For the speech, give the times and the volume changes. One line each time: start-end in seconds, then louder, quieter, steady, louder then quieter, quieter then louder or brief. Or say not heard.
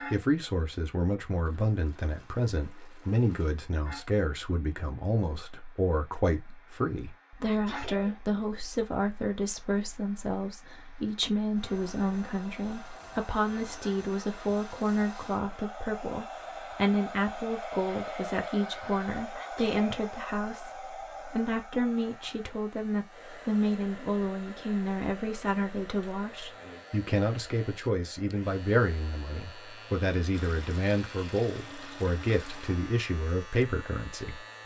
0.1-34.6 steady.